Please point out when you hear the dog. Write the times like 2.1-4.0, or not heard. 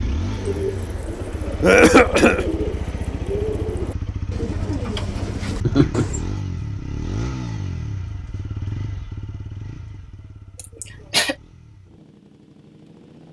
not heard.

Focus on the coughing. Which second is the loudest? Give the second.
2 s.